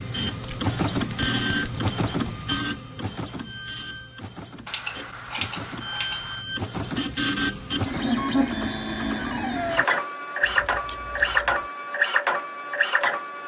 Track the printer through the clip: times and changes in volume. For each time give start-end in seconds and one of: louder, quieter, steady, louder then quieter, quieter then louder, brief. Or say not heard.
0.0-13.4 quieter then louder.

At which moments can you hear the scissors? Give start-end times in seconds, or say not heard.
0.2-2.7, 4.7-6.5, 10.4-11.7.